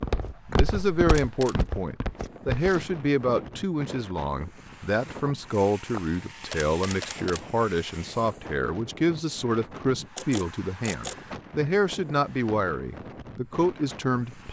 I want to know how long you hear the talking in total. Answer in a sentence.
The talking can be heard for 14 seconds in total.